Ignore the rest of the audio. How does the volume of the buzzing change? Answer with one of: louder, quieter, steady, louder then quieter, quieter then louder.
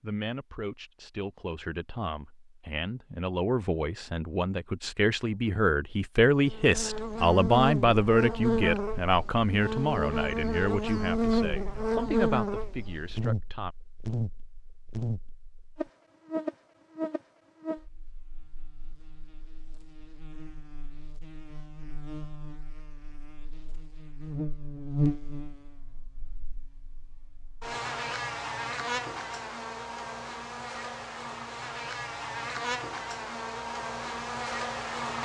quieter then louder.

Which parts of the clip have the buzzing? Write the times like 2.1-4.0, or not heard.
6.5-35.2.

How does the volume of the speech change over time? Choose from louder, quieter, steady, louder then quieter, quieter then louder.
louder then quieter.